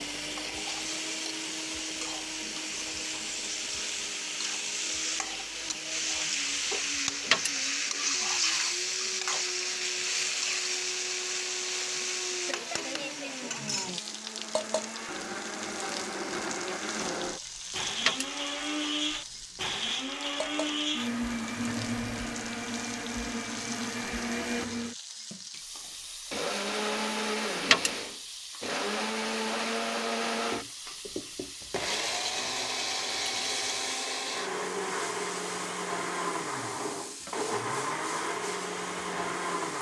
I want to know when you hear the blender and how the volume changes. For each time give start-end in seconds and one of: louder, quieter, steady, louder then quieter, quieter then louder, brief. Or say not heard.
0.0-39.7 louder.